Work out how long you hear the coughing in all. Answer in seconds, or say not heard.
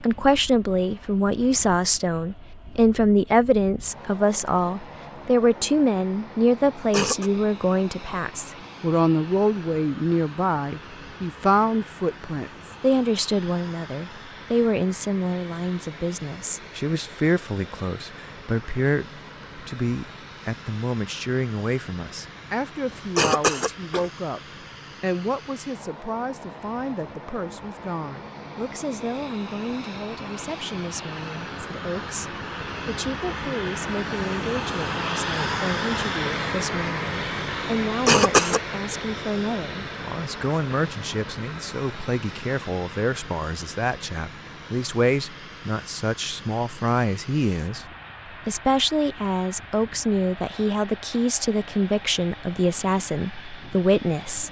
2 s.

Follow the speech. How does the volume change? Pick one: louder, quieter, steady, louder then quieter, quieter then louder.
quieter then louder.